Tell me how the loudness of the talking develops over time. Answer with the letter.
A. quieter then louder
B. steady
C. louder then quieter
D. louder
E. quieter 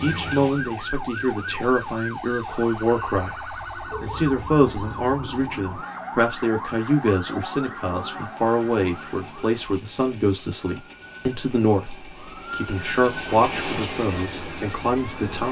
B.